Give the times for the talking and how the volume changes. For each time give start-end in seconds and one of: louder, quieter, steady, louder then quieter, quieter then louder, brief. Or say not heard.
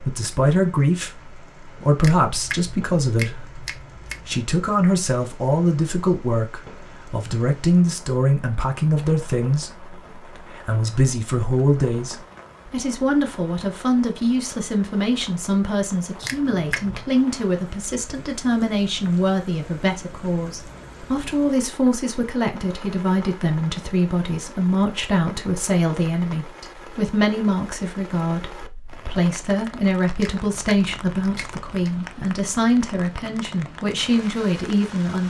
0.0-35.2 steady.